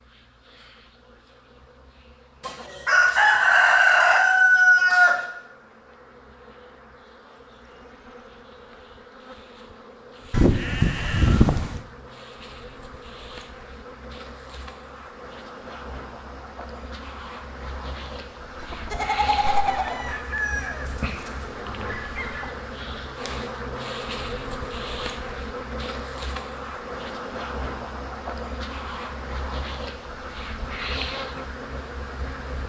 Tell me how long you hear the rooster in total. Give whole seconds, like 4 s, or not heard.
7 s.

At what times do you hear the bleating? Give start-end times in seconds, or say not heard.
10.3-11.8, 18.9-19.9.